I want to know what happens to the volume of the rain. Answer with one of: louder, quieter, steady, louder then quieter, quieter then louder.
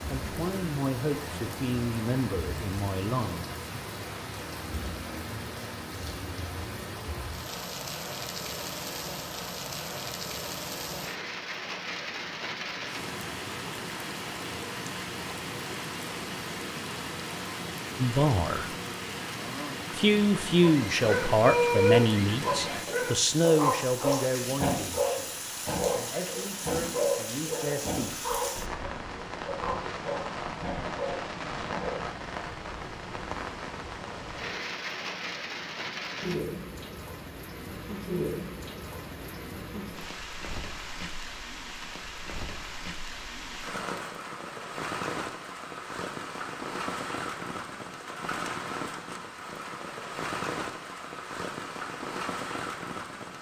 steady.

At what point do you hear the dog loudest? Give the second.
22 s.